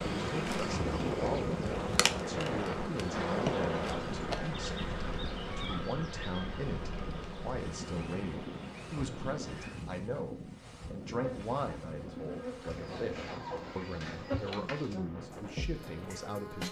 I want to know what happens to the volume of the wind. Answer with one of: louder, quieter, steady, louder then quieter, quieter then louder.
quieter.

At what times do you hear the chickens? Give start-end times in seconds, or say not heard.
12.7-14.9.